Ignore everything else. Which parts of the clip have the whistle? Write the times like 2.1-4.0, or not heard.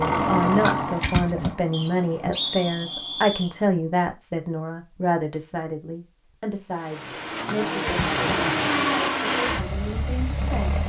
1.7-3.5.